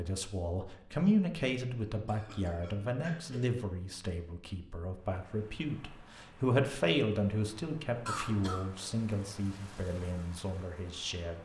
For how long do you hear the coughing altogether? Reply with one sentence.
You can hear the coughing for 2 seconds altogether.